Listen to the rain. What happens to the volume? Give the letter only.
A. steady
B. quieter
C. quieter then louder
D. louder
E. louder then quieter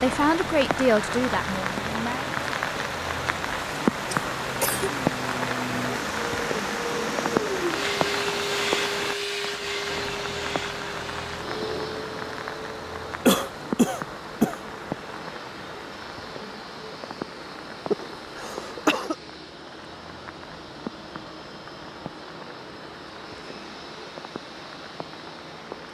B.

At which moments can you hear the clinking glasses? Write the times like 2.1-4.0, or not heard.
not heard.